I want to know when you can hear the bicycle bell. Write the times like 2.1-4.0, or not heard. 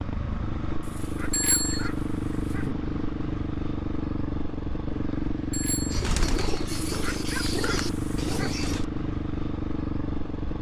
1.3-1.9, 5.5-6.0.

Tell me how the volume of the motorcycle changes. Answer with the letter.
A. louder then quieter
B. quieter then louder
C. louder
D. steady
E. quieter
D.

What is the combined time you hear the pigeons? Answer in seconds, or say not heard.
3 s.